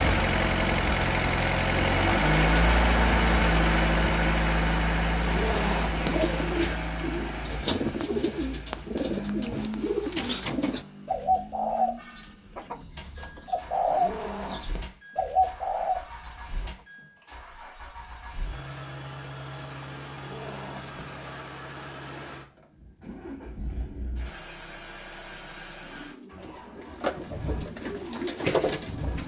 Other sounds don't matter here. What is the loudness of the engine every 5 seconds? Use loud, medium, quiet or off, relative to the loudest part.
loud, medium, quiet, quiet, quiet, quiet.